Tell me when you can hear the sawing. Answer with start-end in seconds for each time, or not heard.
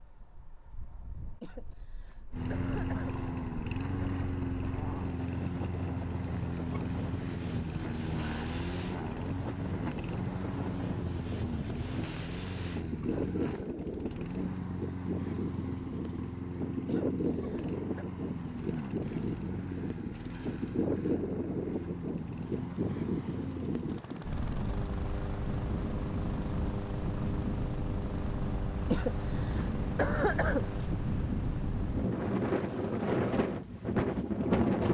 not heard.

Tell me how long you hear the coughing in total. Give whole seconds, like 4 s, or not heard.
5 s.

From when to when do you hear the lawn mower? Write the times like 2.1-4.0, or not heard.
2.3-33.2.